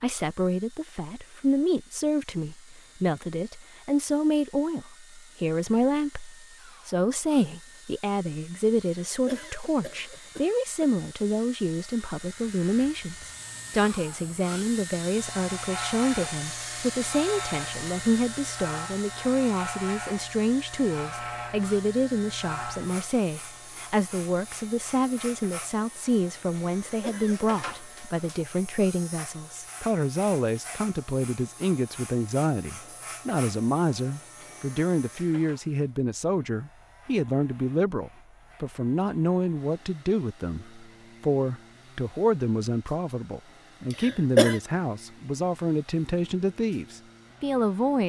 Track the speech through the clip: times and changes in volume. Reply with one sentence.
The speech can be heard from 0.0 to 48.0 s, at a steady volume.